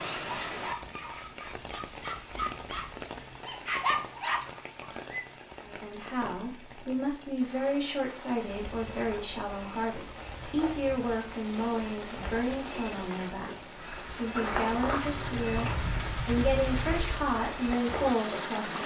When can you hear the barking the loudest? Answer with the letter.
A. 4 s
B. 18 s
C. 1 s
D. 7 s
A.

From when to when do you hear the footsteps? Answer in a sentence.
The footsteps can be heard from 8.5 to 18.1 s.